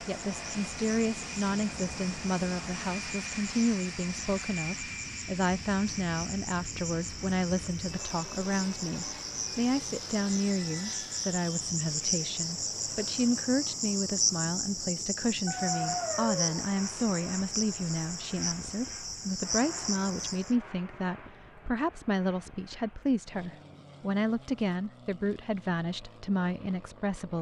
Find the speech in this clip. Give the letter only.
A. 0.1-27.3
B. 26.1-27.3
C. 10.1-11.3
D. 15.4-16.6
A.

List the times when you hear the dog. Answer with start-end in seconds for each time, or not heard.
15.4-16.6.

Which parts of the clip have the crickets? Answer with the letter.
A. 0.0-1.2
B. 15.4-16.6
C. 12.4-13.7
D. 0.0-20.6
D.